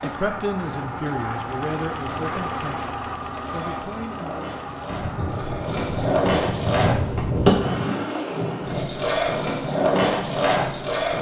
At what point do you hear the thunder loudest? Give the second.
7 s.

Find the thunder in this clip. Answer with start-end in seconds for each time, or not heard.
4.8-7.6.